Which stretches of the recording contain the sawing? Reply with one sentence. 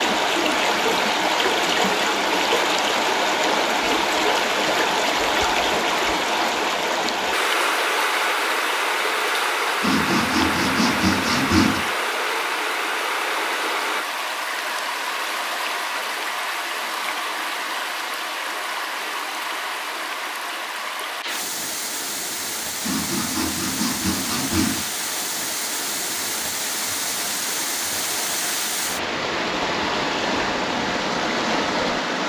The sawing can be heard from 9.8 to 11.8 s and from 22.8 to 24.8 s.